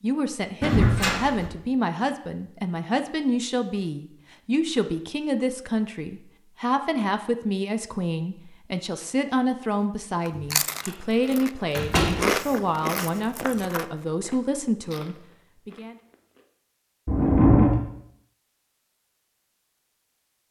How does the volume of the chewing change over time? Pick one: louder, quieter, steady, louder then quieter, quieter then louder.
louder then quieter.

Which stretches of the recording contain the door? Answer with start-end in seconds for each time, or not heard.
0.6-1.5, 10.3-10.9, 11.8-12.2, 17.1-17.8.